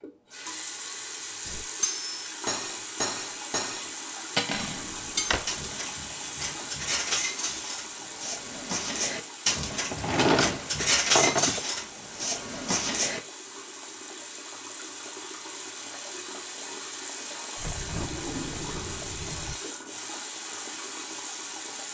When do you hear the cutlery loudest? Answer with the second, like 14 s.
11 s.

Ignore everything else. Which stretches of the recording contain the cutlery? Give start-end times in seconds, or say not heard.
1.4-13.2.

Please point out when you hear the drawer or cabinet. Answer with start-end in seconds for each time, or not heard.
4.6-5.5, 9.9-11.7, 17.6-19.6.